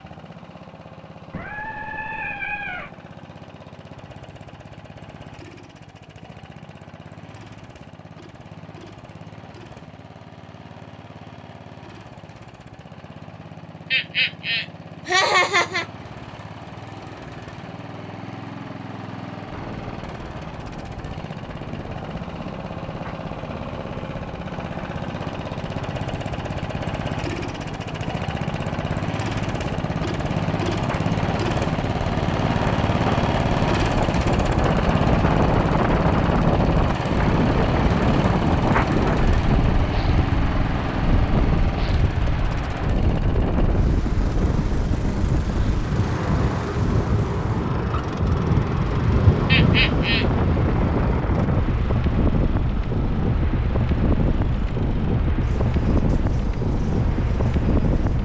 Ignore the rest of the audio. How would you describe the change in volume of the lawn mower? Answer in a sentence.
The volume of the lawn mower goes up, then down.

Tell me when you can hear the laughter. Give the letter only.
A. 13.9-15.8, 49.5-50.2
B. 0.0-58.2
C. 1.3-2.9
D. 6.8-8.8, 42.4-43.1
A.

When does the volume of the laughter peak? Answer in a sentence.
The loudest moment of the laughter is at 15 seconds.